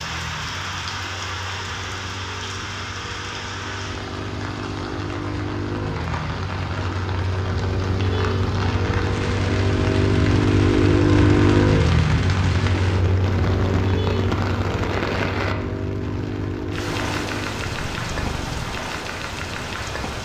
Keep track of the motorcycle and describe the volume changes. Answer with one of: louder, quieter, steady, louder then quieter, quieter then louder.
louder then quieter.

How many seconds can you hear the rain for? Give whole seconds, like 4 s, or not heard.
20 s.